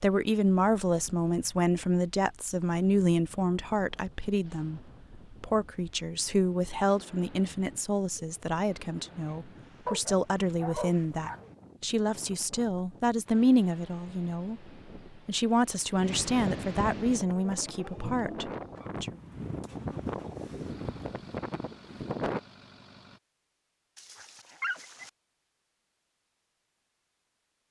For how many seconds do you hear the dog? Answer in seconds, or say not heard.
3 s.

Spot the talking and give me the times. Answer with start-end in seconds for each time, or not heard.
0.0-4.8, 5.4-19.1.